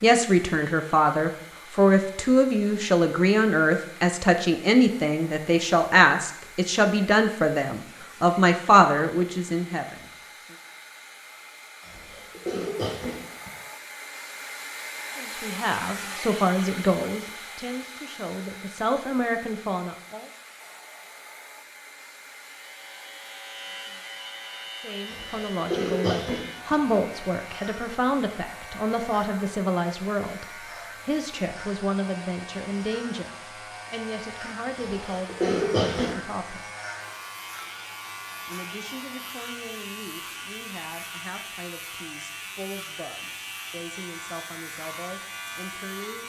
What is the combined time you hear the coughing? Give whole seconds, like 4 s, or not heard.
5 s.